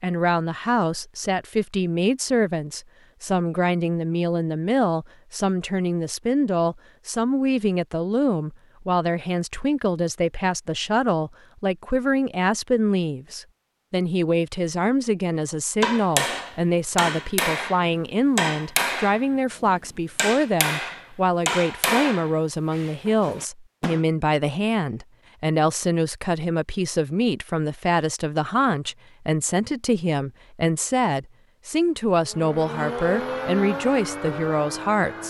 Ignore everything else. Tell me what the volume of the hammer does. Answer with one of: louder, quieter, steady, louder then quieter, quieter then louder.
quieter.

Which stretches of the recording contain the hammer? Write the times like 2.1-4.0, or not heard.
15.8-24.1.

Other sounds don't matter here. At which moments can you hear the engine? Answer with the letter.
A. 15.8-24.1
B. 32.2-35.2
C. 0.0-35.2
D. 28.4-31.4
B.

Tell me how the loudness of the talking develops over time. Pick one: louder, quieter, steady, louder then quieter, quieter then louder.
steady.